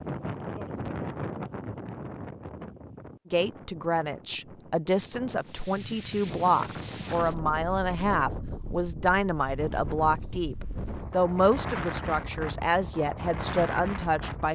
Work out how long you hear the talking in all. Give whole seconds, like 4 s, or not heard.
11 s.